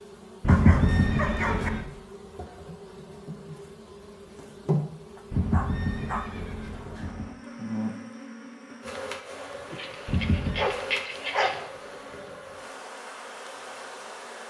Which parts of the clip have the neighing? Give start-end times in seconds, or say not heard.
0.4-1.9, 5.3-7.3, 10.1-10.7.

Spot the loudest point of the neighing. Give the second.
1 s.